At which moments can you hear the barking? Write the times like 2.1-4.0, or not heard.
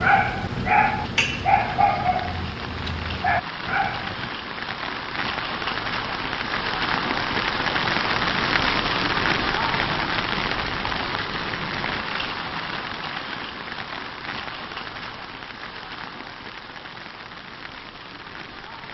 0.0-4.3.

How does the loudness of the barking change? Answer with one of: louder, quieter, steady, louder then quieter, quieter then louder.
quieter then louder.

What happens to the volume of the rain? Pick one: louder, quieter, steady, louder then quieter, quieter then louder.
louder then quieter.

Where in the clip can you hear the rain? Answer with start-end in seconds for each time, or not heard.
0.0-18.8.